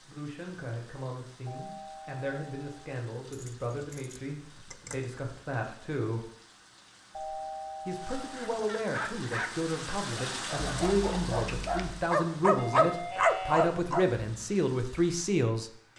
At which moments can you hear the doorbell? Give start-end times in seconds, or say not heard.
1.4-2.8, 7.1-8.4, 12.6-13.8.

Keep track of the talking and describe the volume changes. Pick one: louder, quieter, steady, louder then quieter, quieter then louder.
louder.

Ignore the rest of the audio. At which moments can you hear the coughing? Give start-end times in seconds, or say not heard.
not heard.